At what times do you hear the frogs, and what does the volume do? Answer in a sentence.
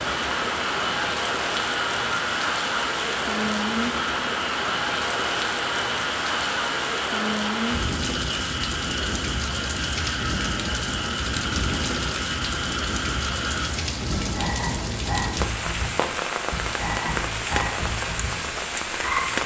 You can hear the frogs from 0.0 to 19.4 s, at a steady volume.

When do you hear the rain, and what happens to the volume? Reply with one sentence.
The rain can be heard from 0.0 to 19.4 s, at a steady volume.